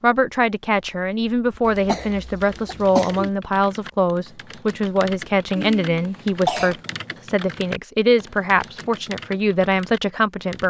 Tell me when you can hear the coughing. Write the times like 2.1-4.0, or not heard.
1.6-3.3, 5.5-6.8.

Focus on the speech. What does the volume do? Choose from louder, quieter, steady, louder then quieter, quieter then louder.
steady.